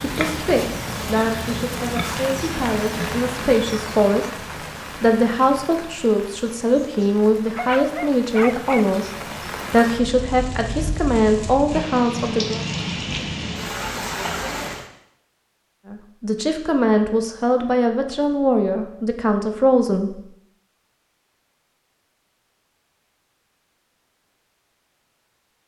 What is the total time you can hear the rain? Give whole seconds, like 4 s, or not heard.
15 s.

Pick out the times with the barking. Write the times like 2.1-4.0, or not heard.
7.5-8.9.